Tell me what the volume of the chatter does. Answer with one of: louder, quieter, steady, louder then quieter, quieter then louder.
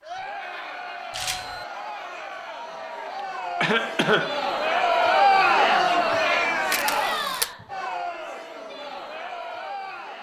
louder then quieter.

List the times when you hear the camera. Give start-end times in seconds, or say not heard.
1.1-1.6, 6.7-7.5.